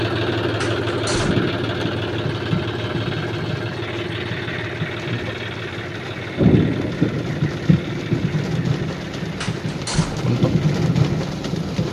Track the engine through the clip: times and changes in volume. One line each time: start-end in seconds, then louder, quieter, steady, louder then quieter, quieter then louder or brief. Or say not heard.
0.0-11.8 quieter.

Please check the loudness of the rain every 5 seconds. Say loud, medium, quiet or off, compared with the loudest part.
medium, loud, loud.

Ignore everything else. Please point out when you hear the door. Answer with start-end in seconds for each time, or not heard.
0.6-1.4, 9.4-10.2.